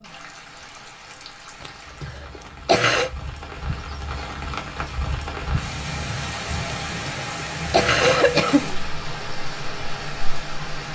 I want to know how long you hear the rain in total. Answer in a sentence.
You can hear the rain for 11 seconds altogether.